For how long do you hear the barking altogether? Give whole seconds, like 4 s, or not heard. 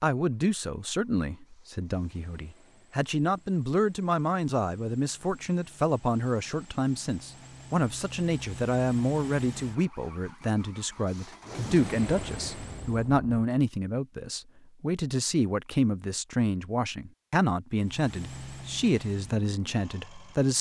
not heard.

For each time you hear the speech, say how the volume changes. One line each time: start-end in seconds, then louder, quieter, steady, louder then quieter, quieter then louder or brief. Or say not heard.
0.0-20.5 steady.